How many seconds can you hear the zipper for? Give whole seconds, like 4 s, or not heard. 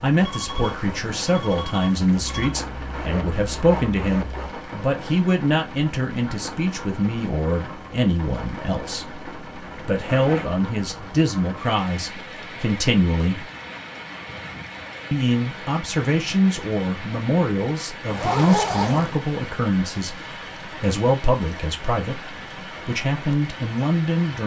4 s.